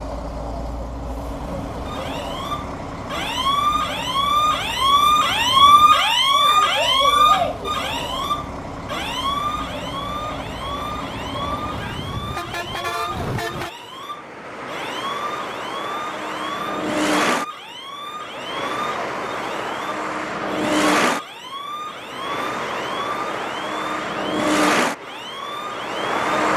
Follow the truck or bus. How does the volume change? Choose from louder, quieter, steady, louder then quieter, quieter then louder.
louder.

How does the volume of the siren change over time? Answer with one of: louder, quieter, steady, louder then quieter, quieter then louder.
quieter.